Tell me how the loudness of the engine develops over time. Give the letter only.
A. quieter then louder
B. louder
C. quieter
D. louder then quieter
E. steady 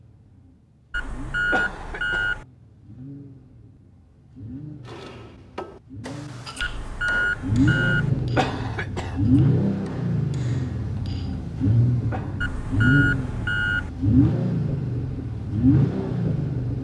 B.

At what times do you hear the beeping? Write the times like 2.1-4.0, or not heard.
0.9-2.5, 6.6-8.1, 12.4-13.9.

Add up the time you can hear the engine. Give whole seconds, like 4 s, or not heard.
17 s.